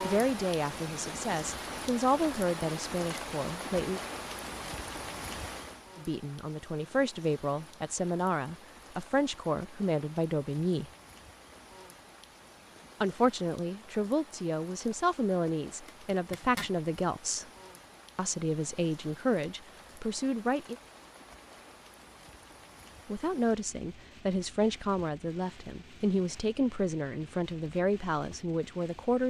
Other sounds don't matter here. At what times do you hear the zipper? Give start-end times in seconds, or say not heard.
15.8-16.8.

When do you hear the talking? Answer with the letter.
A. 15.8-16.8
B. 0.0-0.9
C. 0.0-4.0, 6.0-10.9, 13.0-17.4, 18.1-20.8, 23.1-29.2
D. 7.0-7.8
C.